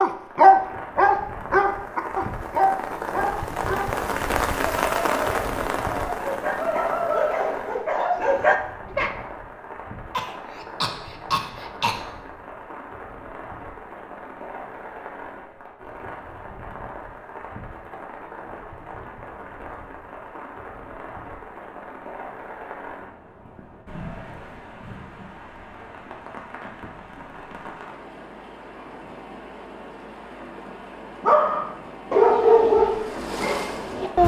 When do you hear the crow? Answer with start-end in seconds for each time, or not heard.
not heard.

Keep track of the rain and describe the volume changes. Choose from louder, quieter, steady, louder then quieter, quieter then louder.
quieter.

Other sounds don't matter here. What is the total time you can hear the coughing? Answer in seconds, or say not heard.
2 s.